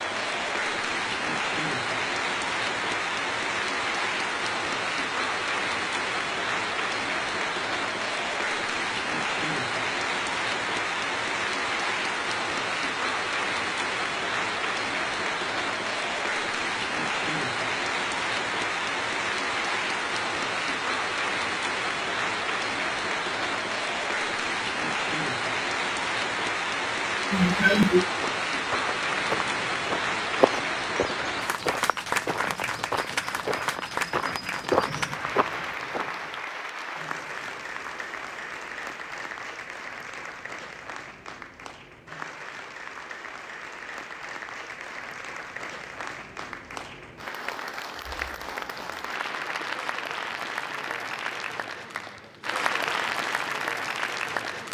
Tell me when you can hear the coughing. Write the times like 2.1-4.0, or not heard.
27.3-28.1.